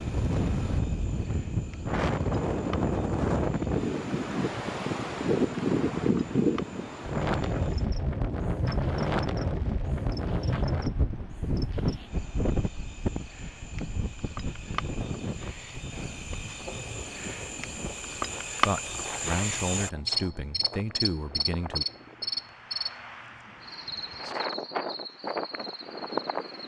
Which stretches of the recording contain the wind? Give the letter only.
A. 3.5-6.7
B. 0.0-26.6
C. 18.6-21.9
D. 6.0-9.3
B.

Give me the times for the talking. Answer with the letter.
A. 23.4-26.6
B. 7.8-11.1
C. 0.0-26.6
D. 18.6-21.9
D.